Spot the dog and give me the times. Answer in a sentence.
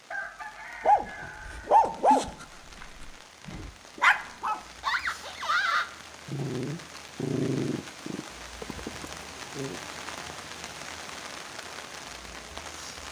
You can hear the dog from 0.8 to 9.8 s.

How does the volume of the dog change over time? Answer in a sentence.
The loudness of the dog goes down.